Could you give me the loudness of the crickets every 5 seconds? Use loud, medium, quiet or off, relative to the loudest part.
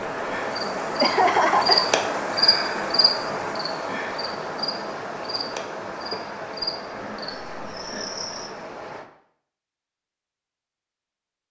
loud, medium, off.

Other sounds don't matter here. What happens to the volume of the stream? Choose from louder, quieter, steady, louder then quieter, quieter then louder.
quieter.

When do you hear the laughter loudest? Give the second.
1 s.